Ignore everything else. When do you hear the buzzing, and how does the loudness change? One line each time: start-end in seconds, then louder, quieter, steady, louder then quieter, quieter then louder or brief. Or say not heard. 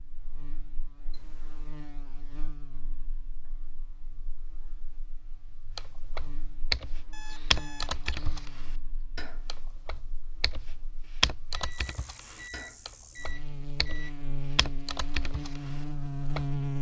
0.0-16.7 quieter then louder.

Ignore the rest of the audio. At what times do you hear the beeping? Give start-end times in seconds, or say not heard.
1.1-1.8, 7.1-8.3, 11.6-14.2.